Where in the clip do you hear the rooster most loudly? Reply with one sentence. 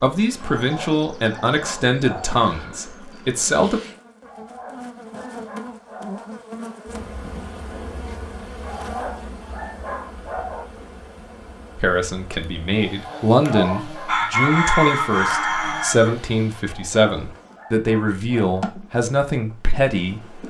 The volume of the rooster peaks at 15 seconds.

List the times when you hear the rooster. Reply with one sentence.
The rooster can be heard from 13.4 to 16.6 s.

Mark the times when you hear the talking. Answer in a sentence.
The talking can be heard from 0.0 to 3.8 s and from 11.8 to 20.4 s.